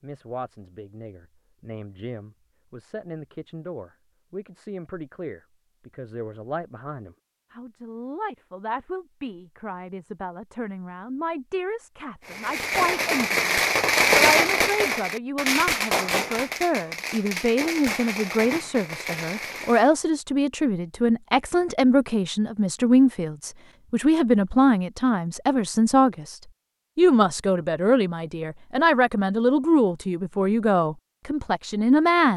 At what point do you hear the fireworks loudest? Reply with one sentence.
The volume of the fireworks peaks at 14 seconds.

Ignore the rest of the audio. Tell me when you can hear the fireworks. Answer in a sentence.
You can hear the fireworks from 12.2 to 19.9 s.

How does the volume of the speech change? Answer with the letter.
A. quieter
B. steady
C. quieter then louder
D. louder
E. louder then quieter
D.